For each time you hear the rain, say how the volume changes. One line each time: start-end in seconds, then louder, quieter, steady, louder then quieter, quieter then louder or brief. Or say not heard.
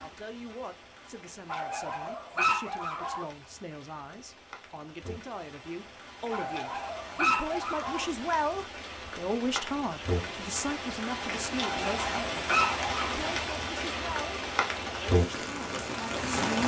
0.0-16.6 louder.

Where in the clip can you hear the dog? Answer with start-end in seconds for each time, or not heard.
1.4-3.2, 6.3-8.1, 11.6-12.9.